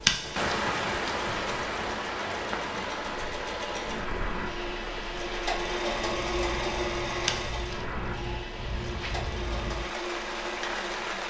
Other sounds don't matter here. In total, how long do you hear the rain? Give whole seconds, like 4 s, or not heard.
11 s.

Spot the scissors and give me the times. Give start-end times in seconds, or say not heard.
0.0-0.6, 7.2-7.8.